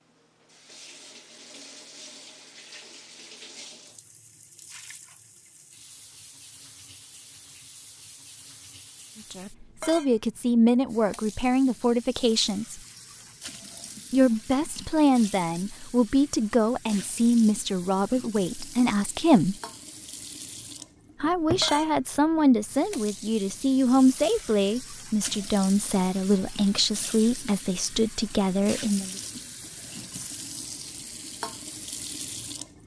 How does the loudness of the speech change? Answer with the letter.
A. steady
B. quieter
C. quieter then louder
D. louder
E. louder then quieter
A.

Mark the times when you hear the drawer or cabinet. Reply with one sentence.
The drawer or cabinet can be heard from 21.2 to 21.7 s.